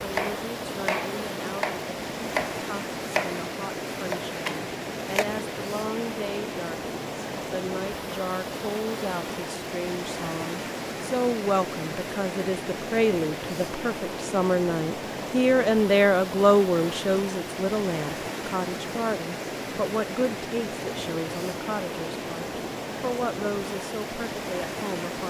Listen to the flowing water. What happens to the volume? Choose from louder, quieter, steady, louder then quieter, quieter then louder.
steady.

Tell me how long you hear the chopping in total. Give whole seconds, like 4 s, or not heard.
5 s.